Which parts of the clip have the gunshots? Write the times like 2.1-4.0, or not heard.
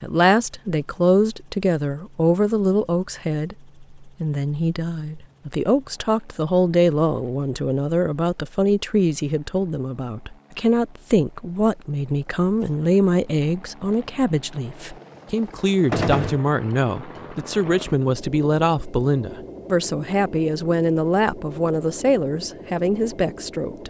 15.9-16.4.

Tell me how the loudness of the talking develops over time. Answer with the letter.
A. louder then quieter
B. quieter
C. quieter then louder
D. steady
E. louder
D.